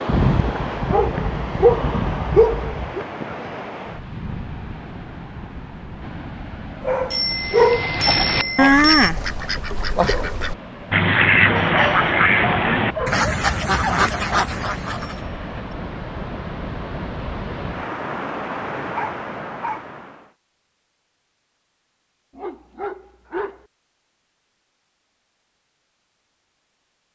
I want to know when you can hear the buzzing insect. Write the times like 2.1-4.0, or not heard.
not heard.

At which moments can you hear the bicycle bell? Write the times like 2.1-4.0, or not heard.
7.1-9.1, 15.2-15.8.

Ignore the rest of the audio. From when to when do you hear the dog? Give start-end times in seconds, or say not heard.
0.1-3.0, 6.8-8.4, 11.6-13.3, 18.9-19.8, 22.4-23.6.